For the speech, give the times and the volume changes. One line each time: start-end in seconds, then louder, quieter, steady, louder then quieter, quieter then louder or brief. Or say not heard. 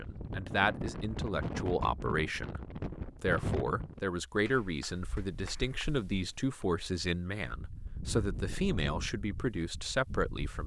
0.0-2.6 brief
3.2-10.6 steady.